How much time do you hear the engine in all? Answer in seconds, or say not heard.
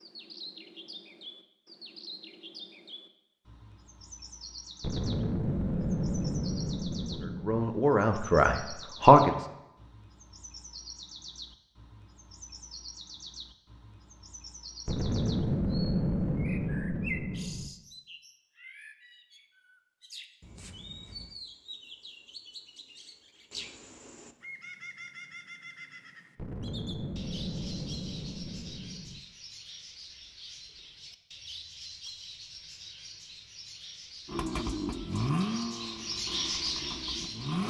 3 s.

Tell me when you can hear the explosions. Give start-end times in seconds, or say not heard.
4.8-7.7, 14.8-17.7, 26.4-29.2.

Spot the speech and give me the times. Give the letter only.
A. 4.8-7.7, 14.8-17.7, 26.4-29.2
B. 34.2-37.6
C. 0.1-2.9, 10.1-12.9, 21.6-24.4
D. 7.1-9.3
D.